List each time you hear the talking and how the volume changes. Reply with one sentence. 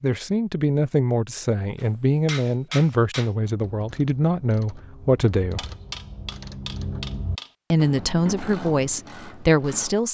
The talking can be heard from 0.0 to 5.7 s, at a steady volume; and briefly from 7.7 to 10.0 s.